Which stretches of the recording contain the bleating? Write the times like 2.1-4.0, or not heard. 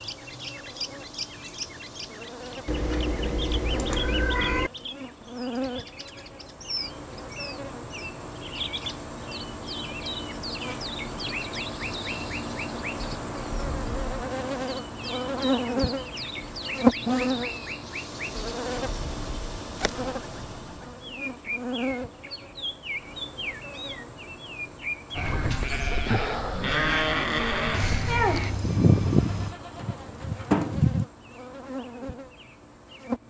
25.1-31.1.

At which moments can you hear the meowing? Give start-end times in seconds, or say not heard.
2.6-4.7, 27.7-29.6.